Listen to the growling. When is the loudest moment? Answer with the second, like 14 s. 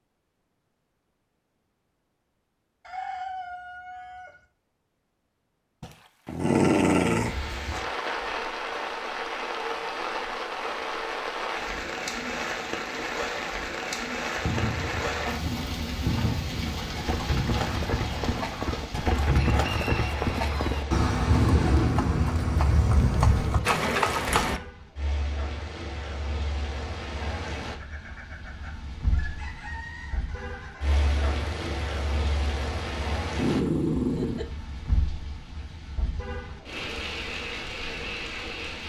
7 s.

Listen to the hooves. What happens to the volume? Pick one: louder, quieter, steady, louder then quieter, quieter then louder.
louder.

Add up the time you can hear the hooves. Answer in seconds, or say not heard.
10 s.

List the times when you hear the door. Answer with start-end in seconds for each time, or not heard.
not heard.